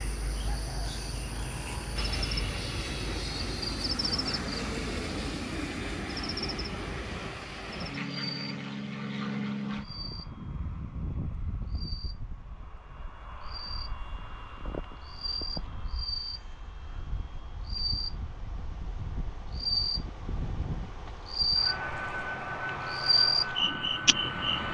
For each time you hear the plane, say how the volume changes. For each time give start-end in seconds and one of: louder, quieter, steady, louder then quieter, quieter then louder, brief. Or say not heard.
1.9-24.6 quieter then louder.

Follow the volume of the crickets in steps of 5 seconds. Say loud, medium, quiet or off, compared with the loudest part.
medium, medium, quiet, medium, loud.